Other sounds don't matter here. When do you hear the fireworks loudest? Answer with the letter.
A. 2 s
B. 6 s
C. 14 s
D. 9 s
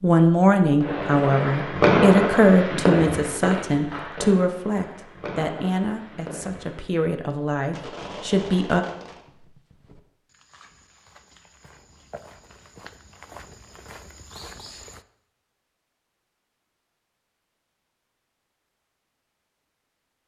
A.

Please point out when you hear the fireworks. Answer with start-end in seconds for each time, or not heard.
0.8-9.2.